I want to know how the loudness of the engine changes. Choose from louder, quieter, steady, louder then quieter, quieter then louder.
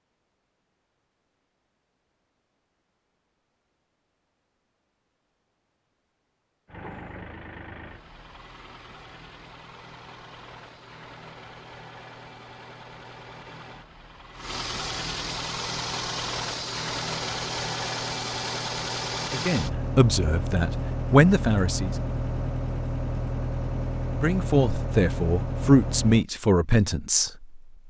louder.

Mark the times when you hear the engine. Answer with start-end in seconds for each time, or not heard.
6.7-26.2.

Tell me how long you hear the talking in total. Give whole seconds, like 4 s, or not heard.
6 s.